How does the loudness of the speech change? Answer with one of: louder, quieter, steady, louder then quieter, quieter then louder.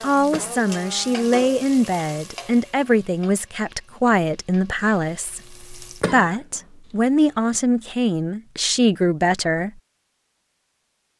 steady.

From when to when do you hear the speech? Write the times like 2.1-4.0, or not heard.
0.0-9.7.